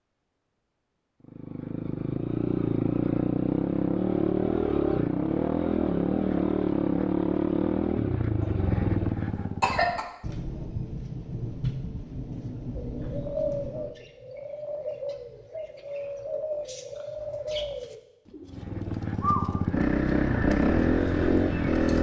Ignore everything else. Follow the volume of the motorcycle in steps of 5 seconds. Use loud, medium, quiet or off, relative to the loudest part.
loud, loud, off, medium, loud.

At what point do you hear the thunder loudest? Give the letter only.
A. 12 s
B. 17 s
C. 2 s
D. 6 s
A.